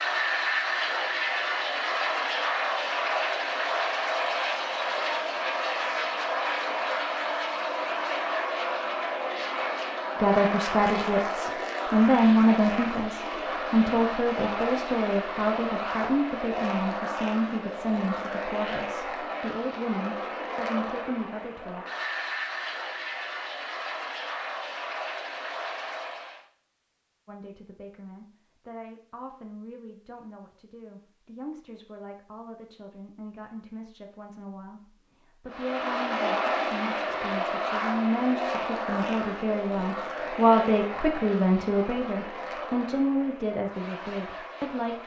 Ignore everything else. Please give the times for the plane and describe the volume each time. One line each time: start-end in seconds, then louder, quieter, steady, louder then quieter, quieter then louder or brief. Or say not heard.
0.0-26.4 quieter
35.5-45.0 quieter.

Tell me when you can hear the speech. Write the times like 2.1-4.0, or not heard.
10.2-21.9, 27.2-45.0.